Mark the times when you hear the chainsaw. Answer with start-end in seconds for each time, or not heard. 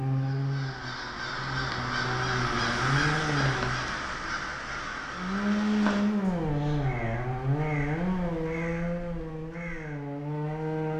0.0-3.9, 5.1-10.9.